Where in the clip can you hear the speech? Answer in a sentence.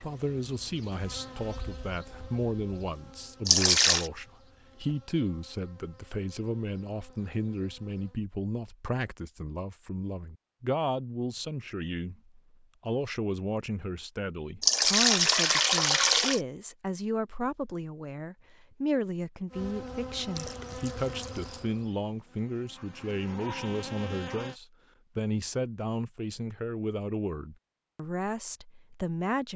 The speech can be heard from 0.0 to 29.5 s.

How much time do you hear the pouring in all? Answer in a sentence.
The pouring can be heard for 4 seconds in total.